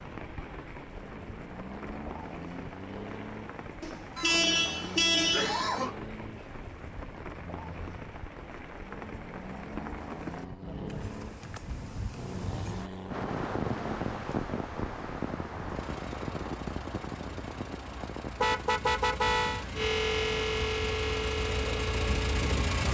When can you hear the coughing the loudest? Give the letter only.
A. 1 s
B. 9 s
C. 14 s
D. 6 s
D.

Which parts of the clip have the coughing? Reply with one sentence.
The coughing can be heard from 4.2 to 6.0 s.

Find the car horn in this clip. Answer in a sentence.
You can hear the car horn from 3.8 to 5.7 s and from 18.4 to 19.6 s.